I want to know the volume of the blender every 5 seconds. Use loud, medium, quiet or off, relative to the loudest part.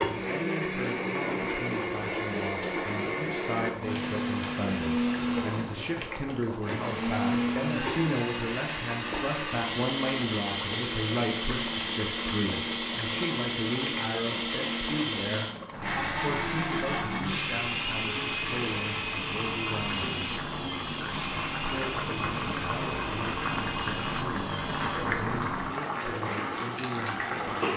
loud, loud, loud, loud, medium, medium.